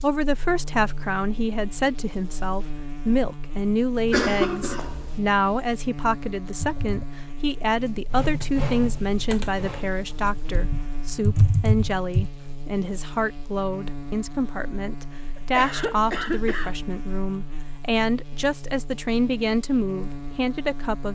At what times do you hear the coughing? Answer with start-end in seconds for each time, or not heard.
4.0-5.2, 15.3-16.8.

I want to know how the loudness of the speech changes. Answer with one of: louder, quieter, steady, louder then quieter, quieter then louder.
steady.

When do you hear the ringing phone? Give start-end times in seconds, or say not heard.
not heard.